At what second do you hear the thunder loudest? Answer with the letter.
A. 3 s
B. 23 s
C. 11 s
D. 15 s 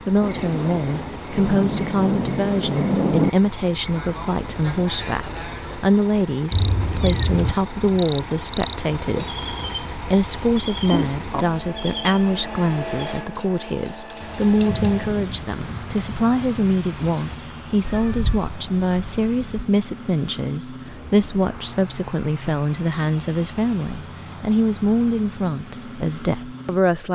A.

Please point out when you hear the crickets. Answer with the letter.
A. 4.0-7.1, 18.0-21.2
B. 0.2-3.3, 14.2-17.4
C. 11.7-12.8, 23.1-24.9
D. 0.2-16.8
D.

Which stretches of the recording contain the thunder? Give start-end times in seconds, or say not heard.
0.2-3.3, 14.2-17.4.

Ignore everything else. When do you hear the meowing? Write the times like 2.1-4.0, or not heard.
6.5-7.5, 17.9-19.6.